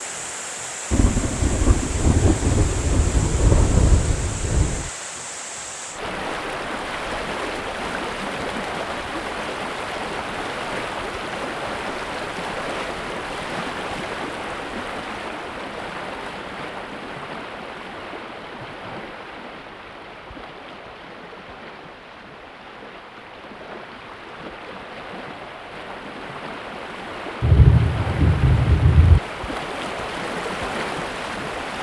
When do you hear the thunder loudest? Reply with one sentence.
The loudest moment of the thunder is at 28 seconds.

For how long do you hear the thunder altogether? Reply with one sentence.
You can hear the thunder for 6 seconds altogether.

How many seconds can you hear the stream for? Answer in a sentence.
You can hear the stream for 32 seconds altogether.